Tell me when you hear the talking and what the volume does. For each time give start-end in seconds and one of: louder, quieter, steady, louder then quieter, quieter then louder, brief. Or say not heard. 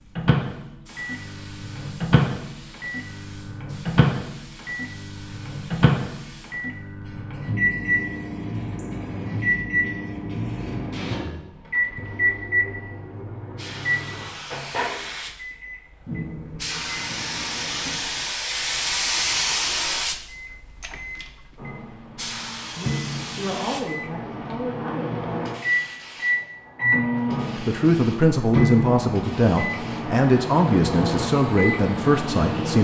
22.6-25.2 brief
27.6-32.7 steady.